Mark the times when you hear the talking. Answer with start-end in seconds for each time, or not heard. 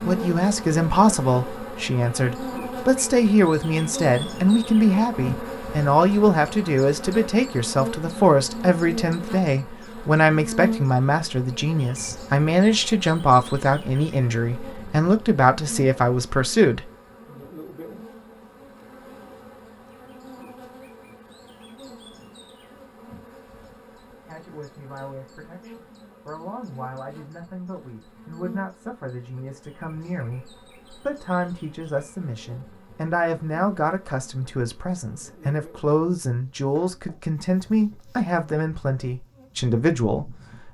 0.1-16.9, 24.2-40.7.